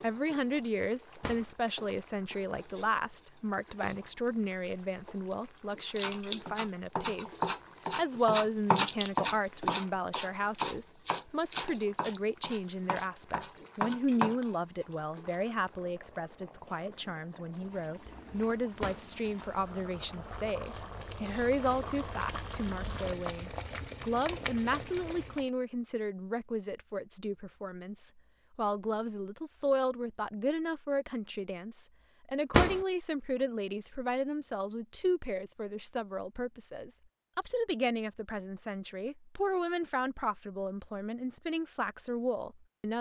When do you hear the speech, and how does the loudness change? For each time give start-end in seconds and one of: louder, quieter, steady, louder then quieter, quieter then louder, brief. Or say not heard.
0.0-42.9 steady.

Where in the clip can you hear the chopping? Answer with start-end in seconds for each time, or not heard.
6.0-14.8.